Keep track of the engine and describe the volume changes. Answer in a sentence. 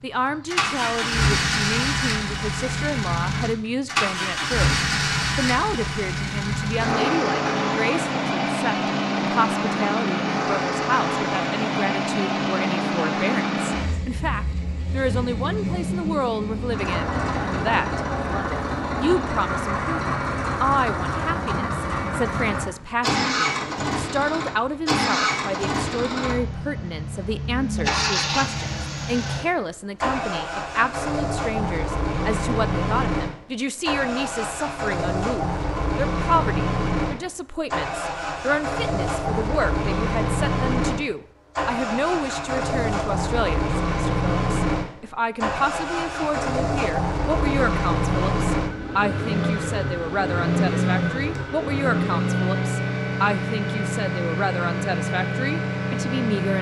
The loudness of the engine stays about the same.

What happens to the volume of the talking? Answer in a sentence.
The volume of the talking stays about the same.